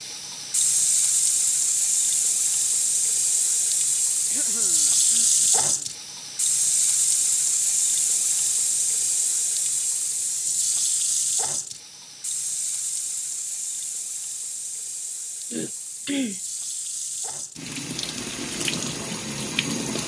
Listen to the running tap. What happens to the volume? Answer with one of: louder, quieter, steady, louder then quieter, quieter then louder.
quieter.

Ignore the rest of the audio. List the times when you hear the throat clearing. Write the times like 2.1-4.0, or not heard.
4.3-5.8, 15.5-16.4.